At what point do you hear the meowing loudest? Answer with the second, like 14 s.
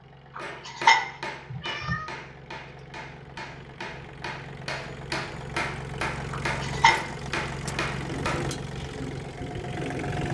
1 s.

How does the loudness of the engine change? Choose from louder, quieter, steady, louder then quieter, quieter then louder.
louder.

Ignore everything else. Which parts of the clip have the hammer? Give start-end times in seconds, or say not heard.
0.3-8.4.